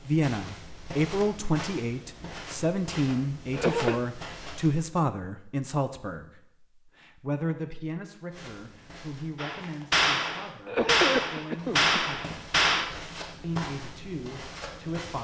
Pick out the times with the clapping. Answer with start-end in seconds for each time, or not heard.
9.3-12.8.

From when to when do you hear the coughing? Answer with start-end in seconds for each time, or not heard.
3.5-4.0, 10.7-12.0.